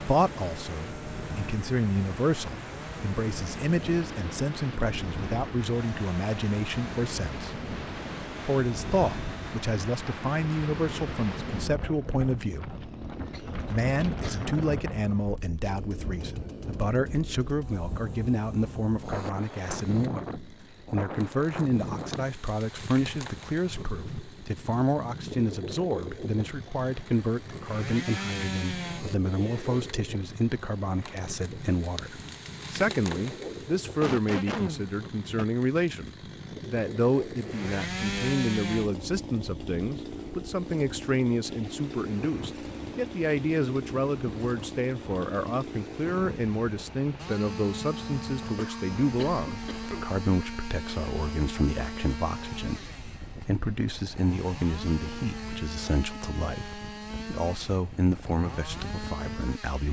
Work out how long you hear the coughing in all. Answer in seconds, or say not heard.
4 s.